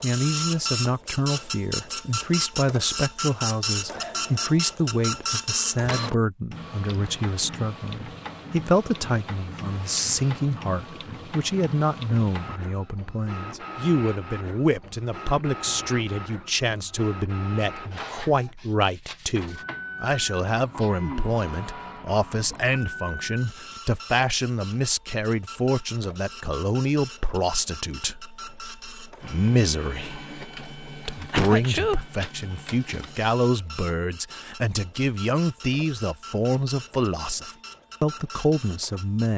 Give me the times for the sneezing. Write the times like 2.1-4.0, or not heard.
3.9-4.5, 20.8-21.2, 31.3-32.0.